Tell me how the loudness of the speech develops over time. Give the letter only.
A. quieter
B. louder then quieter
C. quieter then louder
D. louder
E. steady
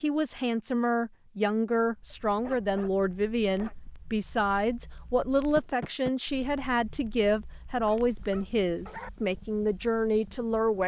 E.